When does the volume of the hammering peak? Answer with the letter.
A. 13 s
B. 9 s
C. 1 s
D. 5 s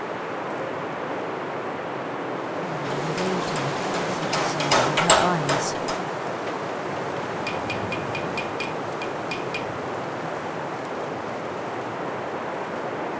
D.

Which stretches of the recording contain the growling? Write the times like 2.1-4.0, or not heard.
not heard.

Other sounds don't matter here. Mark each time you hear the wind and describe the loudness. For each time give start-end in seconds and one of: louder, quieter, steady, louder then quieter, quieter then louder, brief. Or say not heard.
0.0-13.1 steady.